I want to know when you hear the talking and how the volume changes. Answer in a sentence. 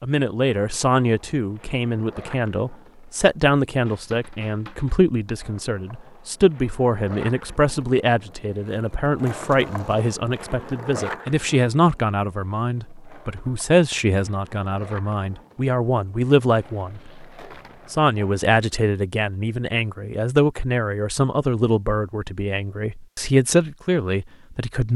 The talking can be heard from 0.0 to 17.2 s, at a steady volume; and from 17.9 to 24.9 s, getting quieter then louder.